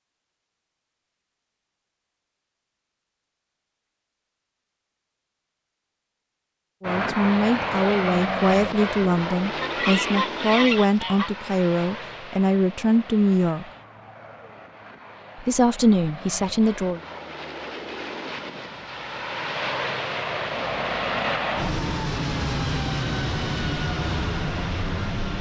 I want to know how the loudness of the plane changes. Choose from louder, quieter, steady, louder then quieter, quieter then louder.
quieter then louder.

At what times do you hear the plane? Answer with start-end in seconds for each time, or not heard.
6.8-25.3.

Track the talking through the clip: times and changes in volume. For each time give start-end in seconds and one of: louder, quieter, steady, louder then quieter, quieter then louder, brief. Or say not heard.
6.8-13.7 steady
15.4-17.0 brief.